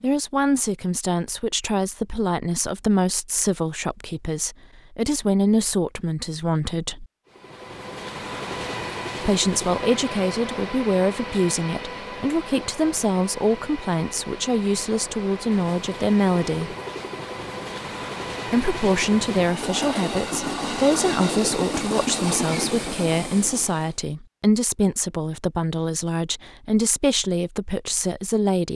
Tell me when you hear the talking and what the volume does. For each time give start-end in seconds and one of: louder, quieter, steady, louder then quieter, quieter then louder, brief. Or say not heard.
0.0-7.0 steady
9.2-16.8 steady
18.4-28.7 steady.